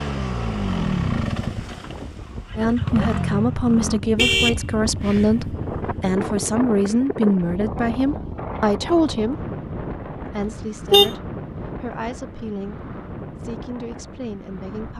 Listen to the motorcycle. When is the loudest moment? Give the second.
1 s.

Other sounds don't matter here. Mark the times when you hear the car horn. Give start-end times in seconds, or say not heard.
4.2-5.5, 10.4-11.1.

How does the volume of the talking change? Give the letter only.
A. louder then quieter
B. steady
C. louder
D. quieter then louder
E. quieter
E.